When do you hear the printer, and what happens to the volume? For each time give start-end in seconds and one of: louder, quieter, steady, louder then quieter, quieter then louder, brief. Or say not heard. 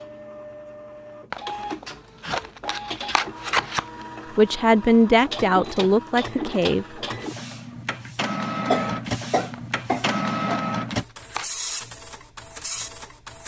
0.0-13.4 louder.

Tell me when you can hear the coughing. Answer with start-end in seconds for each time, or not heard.
8.7-10.6.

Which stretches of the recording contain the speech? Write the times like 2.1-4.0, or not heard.
4.3-7.0.